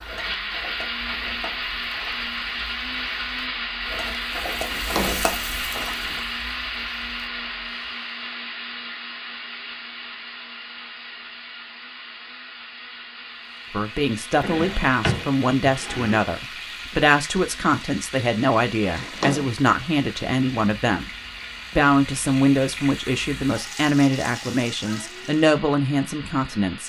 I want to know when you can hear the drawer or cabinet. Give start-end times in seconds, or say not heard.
4.5-6.2, 14.4-16.2, 18.8-19.5.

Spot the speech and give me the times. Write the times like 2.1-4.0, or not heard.
13.7-21.1, 21.8-26.8.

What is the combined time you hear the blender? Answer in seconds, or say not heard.
27 s.